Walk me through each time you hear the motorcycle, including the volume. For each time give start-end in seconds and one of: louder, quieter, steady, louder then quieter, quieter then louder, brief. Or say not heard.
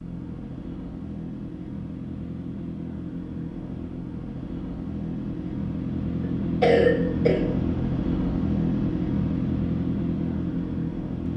0.0-11.3 louder.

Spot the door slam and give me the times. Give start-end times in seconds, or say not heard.
not heard.